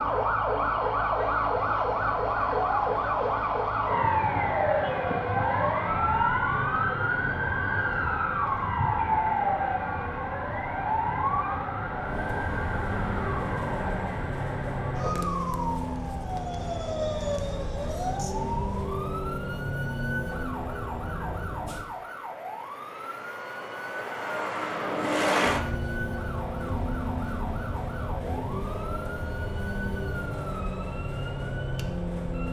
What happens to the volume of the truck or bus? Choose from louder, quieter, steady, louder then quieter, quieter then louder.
louder.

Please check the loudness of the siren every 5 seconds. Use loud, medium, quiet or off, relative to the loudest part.
loud, loud, medium, medium, quiet, quiet, quiet.